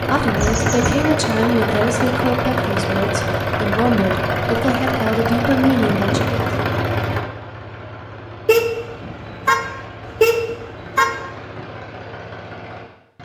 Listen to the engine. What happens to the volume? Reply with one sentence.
The volume of the engine goes down.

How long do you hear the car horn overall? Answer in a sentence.
The car horn can be heard for 3 seconds in total.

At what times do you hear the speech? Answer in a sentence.
The speech can be heard from 0.0 to 6.5 s.